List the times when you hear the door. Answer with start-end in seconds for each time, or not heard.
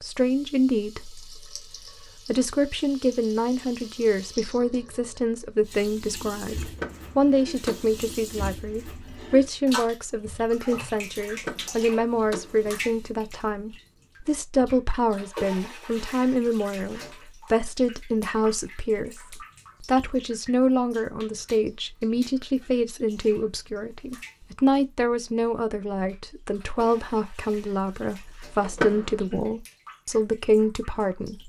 6.6-8.1, 11.3-12.7, 28.6-29.1.